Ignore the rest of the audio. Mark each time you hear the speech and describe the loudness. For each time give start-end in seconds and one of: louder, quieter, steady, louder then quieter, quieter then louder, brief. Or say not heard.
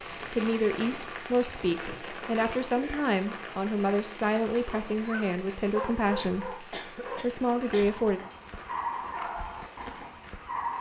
0.3-8.2 steady.